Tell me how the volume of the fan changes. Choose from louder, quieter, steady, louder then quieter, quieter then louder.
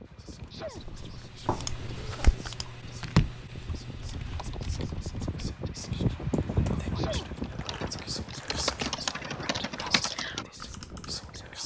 louder then quieter.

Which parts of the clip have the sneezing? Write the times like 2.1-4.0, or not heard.
0.3-0.8, 6.8-7.3.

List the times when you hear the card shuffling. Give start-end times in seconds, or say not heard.
1.4-2.5, 7.6-8.9.